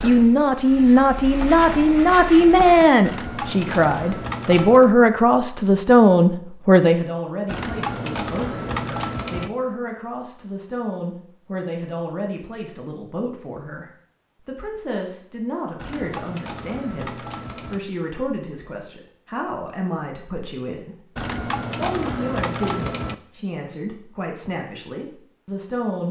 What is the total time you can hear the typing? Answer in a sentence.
The typing can be heard for 8 seconds in total.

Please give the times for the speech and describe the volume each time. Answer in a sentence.
You can hear the speech from 0.0 to 26.0 s, getting quieter.